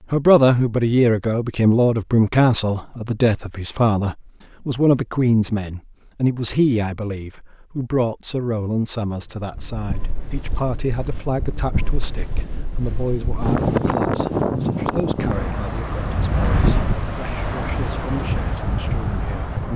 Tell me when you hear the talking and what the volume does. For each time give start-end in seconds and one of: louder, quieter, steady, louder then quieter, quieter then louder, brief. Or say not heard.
0.1-19.6 quieter.